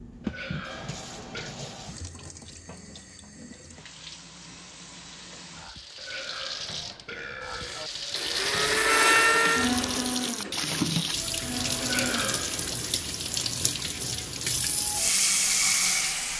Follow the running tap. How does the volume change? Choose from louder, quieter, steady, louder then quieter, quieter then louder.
louder.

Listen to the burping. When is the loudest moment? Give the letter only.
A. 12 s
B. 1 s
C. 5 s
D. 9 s
A.